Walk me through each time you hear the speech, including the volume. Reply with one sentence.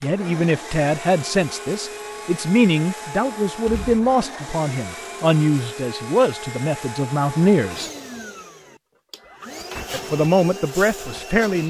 The speech can be heard from 0.0 to 7.9 s, at a steady volume; and briefly from 9.9 to 11.6 s.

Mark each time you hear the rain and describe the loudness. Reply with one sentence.
You can't hear the rain here.